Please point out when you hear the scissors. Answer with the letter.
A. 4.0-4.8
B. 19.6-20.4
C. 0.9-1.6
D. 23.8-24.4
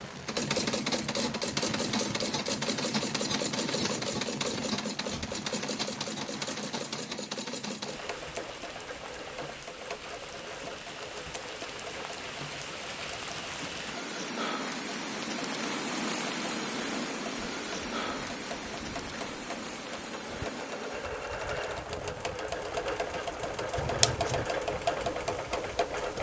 D.